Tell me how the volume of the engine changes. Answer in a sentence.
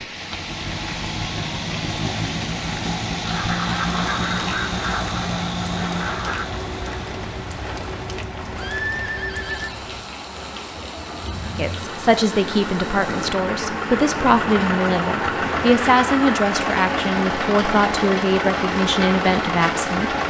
The loudness of the engine goes down, then up.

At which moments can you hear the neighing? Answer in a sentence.
You can hear the neighing from 8.6 to 9.8 s.